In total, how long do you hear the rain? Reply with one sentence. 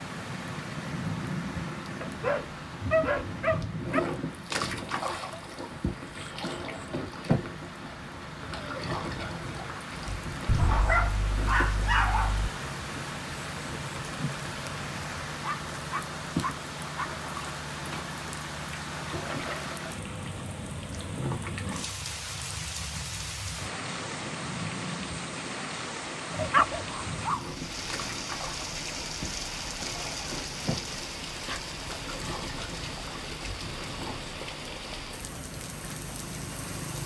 The rain can be heard for 37 seconds in total.